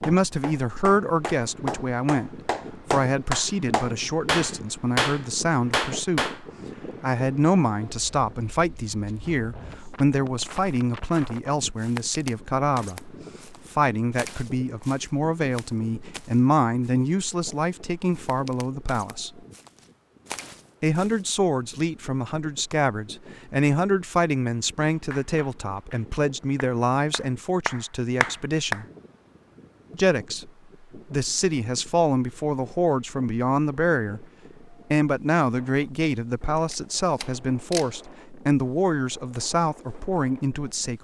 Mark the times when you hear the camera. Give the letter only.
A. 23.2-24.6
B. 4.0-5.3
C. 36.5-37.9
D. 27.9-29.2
C.